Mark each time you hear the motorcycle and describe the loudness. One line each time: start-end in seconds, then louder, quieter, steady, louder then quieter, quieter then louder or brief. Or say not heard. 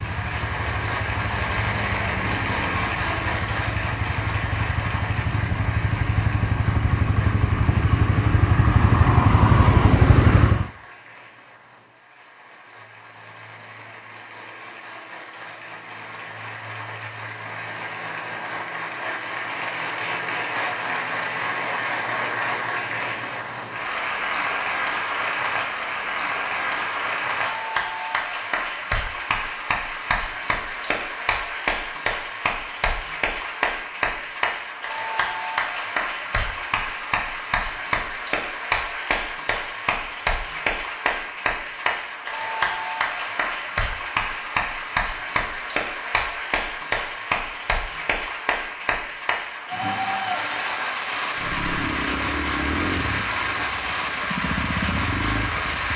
0.0-10.7 louder
51.4-55.9 quieter then louder.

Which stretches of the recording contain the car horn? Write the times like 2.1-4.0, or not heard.
not heard.